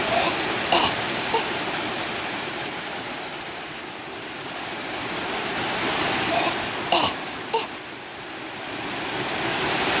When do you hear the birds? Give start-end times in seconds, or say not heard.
not heard.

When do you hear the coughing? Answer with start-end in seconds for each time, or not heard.
0.1-1.4, 6.3-7.7.